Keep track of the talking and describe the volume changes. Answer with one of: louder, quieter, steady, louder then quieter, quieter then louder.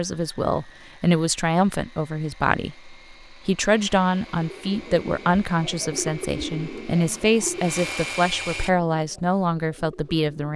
steady.